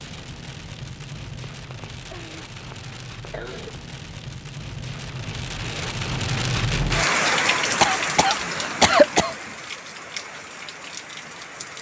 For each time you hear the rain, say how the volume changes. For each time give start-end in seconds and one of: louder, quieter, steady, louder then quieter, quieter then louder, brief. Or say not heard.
0.0-11.7 louder then quieter.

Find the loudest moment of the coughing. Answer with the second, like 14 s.
9 s.